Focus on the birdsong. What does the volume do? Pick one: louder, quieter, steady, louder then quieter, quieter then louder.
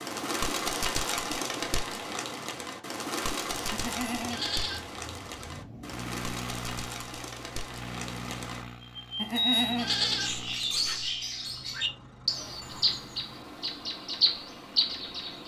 quieter then louder.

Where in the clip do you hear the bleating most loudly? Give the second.
10 s.